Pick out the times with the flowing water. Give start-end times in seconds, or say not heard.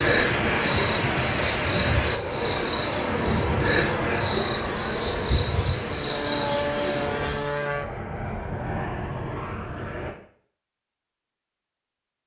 0.0-7.4.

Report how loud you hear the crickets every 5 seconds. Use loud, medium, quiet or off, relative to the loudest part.
loud, medium, off.